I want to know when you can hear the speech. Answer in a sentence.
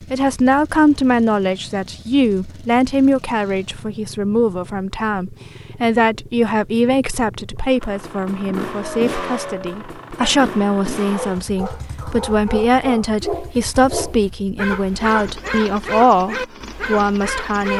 The speech can be heard from 0.1 to 17.7 s.